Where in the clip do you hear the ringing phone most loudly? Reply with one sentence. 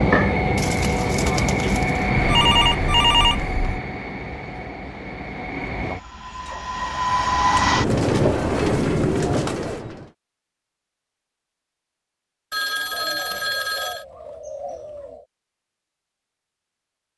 The volume of the ringing phone peaks at 3 seconds.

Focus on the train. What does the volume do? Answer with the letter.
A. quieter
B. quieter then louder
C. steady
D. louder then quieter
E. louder
B.